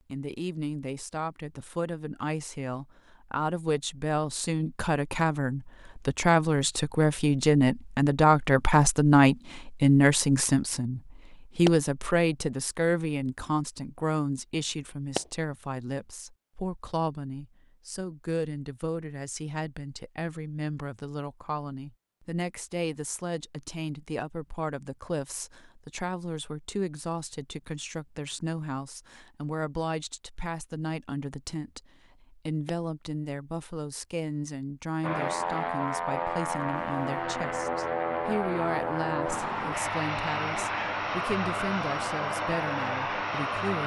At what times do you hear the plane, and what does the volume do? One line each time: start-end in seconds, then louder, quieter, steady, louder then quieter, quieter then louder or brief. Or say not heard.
35.0-43.8 steady.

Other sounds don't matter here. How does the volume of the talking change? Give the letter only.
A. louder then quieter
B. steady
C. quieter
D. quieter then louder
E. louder
C.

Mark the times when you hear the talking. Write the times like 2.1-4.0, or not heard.
0.1-43.8.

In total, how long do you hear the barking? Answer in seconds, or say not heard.
not heard.